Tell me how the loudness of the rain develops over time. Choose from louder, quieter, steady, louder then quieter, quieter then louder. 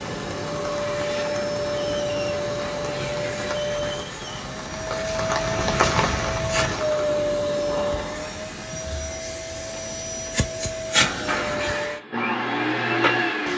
louder.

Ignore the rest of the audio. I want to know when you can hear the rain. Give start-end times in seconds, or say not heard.
0.0-7.2.